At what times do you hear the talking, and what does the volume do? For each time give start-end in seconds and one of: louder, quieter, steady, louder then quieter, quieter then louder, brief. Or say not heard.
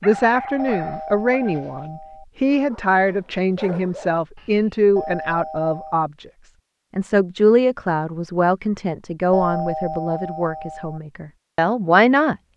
0.0-6.2 steady
7.0-12.3 quieter then louder.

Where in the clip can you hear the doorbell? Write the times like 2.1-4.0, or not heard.
0.6-2.2, 5.0-6.0, 9.3-11.0.